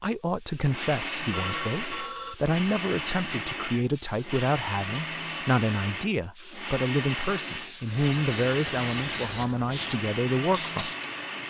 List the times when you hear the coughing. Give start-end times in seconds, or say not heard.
not heard.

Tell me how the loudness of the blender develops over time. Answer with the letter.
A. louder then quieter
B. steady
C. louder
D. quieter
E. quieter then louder
B.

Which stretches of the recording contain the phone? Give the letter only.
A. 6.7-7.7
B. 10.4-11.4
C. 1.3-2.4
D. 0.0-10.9
C.